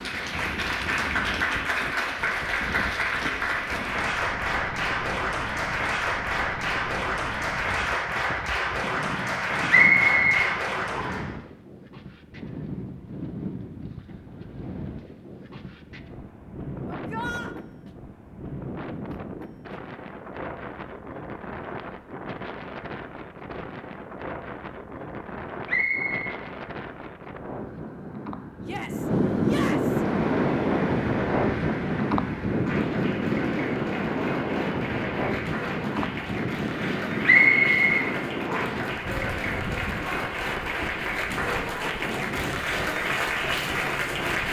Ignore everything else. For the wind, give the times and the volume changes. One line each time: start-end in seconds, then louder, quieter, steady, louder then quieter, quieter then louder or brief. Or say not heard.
0.0-44.4 louder then quieter.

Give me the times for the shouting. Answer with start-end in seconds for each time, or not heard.
16.9-17.6, 28.6-30.1.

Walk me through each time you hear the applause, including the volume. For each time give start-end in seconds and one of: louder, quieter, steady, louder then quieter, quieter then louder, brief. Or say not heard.
0.0-11.3 steady
29.8-44.4 louder.